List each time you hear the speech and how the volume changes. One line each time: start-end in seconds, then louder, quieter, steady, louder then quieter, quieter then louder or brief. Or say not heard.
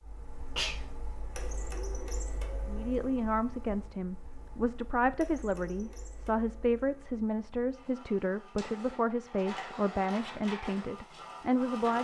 2.6-11.9 steady.